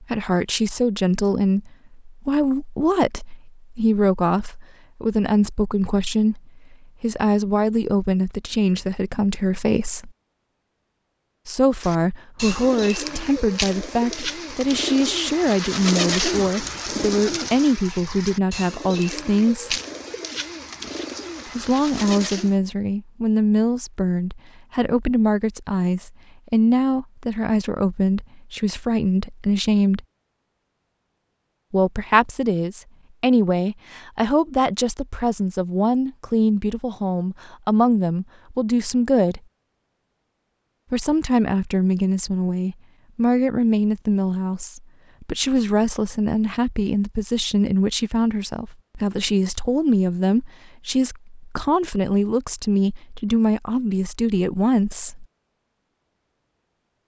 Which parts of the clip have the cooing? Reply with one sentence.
You can hear the cooing from 11.8 to 22.6 s.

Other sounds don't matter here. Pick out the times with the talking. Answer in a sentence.
You can hear the talking from 0.0 to 10.1 s, from 11.4 to 19.8 s, from 21.6 to 30.0 s, from 31.7 to 39.4 s and from 40.9 to 55.2 s.